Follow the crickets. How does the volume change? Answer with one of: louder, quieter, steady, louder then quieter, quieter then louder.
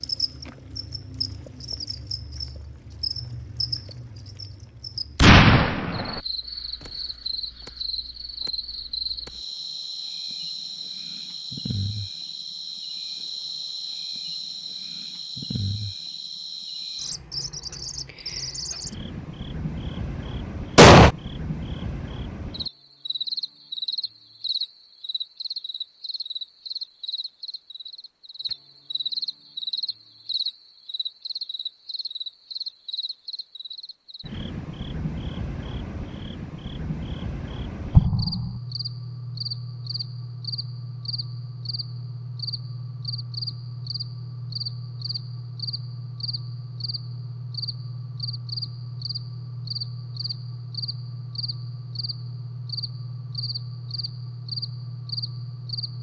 steady.